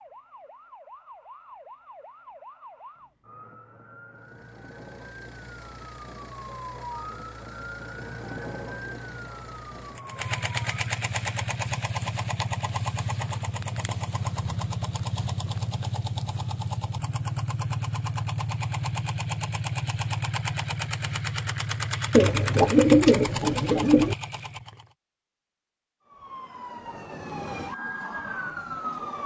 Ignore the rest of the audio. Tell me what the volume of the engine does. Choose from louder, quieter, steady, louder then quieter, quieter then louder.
louder.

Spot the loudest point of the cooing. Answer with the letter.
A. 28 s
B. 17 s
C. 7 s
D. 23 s
D.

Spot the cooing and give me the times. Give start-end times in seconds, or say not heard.
22.1-24.1.